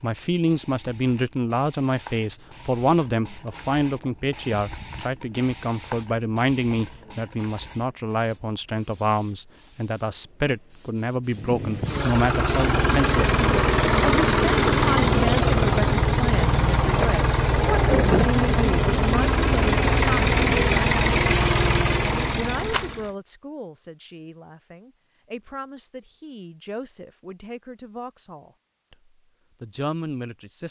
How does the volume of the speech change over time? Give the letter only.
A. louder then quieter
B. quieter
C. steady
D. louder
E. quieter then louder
B.